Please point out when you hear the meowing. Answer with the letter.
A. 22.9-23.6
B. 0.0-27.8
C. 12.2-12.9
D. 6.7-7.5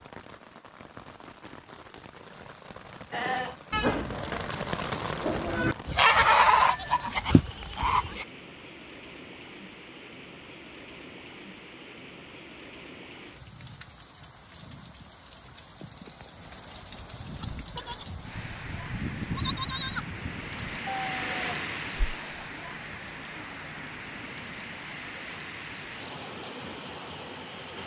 D.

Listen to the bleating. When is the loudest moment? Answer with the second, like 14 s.
6 s.